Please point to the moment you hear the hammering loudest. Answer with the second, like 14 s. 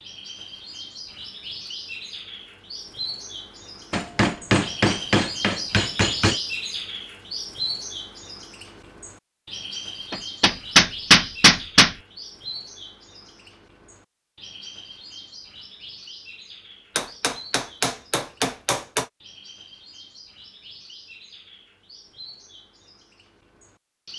11 s.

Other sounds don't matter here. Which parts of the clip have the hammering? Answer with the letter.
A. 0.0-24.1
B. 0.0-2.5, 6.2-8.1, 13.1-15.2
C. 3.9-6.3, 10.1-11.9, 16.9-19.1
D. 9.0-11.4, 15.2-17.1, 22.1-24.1
C.